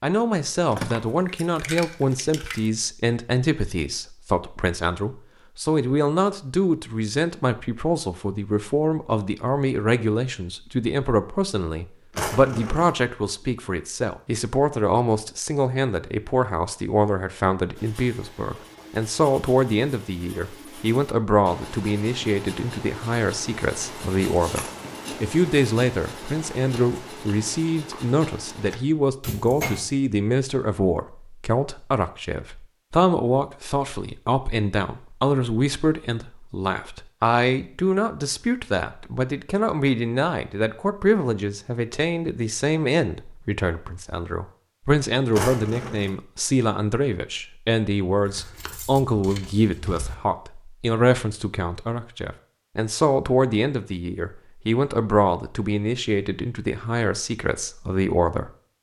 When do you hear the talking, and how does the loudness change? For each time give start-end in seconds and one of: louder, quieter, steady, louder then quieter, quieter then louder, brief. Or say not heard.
0.0-58.5 steady.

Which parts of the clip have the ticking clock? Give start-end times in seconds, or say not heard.
not heard.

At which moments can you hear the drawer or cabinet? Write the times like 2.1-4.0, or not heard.
12.1-12.9, 29.2-29.9, 45.3-46.1.